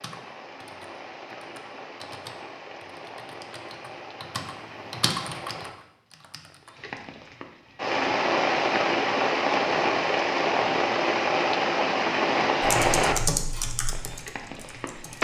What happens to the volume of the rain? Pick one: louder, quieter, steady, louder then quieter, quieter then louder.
louder.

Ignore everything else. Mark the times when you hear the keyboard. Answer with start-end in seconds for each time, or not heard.
0.0-6.8, 12.6-15.1.